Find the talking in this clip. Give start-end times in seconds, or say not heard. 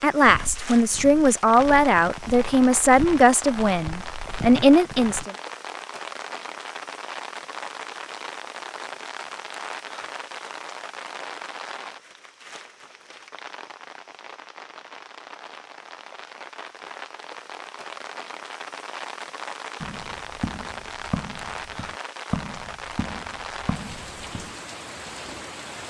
0.0-5.3.